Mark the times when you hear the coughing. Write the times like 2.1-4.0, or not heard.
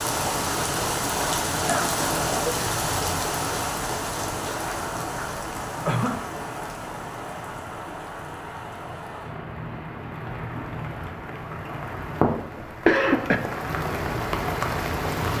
1.6-2.6, 5.8-6.2, 12.6-13.4.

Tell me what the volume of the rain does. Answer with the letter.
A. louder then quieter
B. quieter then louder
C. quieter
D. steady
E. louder
B.